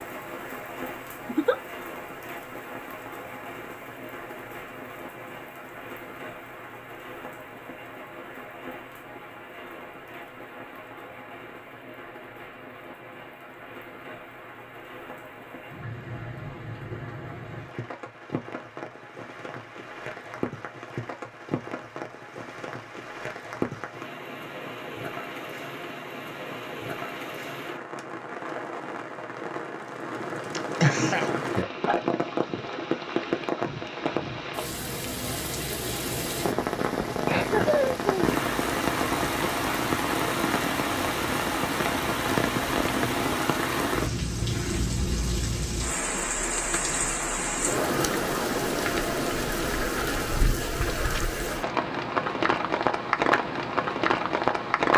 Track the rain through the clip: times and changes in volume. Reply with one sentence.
You can hear the rain from 0.0 to 54.9 s, getting louder.